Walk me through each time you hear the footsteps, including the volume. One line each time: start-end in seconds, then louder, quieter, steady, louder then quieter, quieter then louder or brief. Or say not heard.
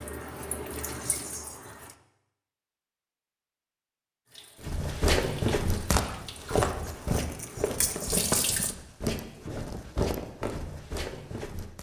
4.7-11.7 quieter.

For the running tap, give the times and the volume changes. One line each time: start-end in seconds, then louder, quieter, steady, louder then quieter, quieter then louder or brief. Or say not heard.
0.0-1.9 brief
4.2-8.8 louder.